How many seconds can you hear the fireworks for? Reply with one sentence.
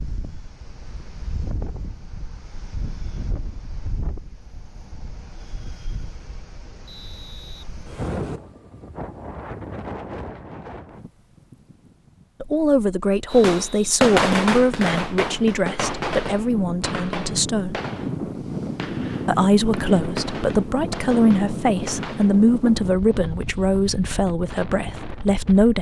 The fireworks can be heard for 9 seconds in total.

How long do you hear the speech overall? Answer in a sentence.
You can hear the speech for 12 seconds altogether.